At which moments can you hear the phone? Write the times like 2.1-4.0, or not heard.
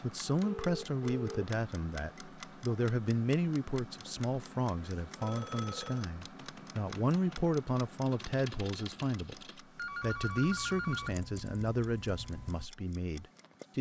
0.4-1.5, 5.2-6.1, 9.8-11.2.